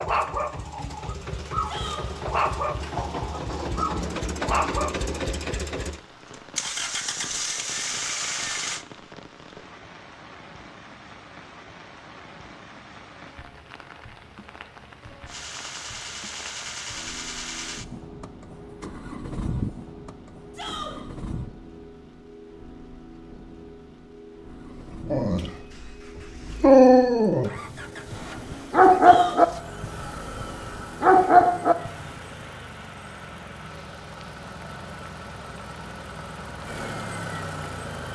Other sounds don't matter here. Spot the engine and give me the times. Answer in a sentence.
You can hear the engine from 0.0 to 8.8 s, from 15.2 to 21.5 s and from 24.4 to 38.0 s.